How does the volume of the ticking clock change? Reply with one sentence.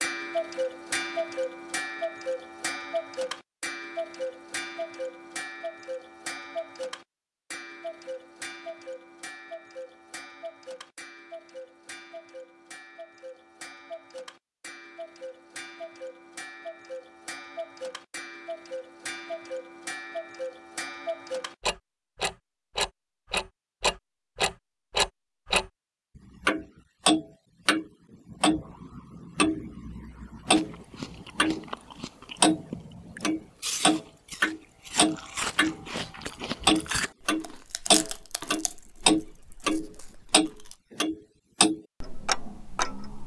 The loudness of the ticking clock goes down, then up.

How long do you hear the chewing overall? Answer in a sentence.
The chewing can be heard for 10 seconds in total.